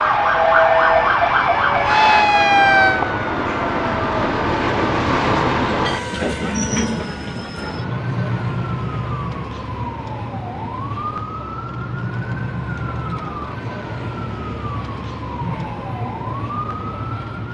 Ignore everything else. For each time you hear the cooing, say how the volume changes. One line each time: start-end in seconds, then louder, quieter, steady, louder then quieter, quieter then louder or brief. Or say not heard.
not heard.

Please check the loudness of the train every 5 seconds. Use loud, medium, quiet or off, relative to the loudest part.
loud, loud, medium, medium.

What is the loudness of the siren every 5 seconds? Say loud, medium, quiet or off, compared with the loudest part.
loud, quiet, quiet, quiet.